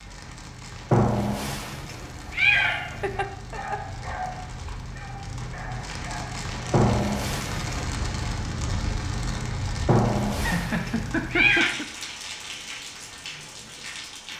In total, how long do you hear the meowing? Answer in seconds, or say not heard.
5 s.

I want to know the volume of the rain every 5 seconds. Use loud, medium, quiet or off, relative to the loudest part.
medium, loud, loud.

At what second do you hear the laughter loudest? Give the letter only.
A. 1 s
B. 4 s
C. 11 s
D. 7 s
C.